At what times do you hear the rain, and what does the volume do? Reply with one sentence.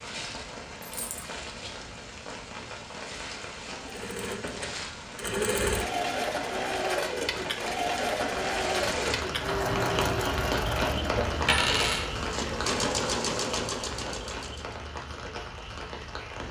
You can hear the rain from 0.0 to 16.4 s, getting louder then quieter.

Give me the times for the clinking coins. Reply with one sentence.
You can hear the clinking coins from 0.8 to 1.2 s and from 11.4 to 12.1 s.